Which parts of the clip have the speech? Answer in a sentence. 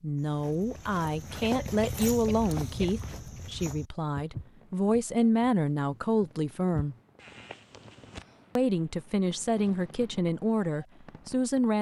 The speech can be heard from 0.0 to 7.0 s and from 8.6 to 11.7 s.